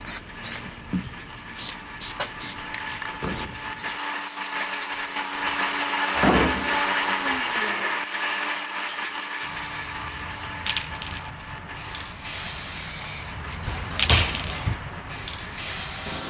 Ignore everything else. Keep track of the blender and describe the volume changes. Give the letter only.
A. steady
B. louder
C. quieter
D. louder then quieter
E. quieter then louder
D.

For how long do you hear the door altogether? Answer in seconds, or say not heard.
3 s.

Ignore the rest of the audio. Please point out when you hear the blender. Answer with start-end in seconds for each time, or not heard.
0.0-16.2.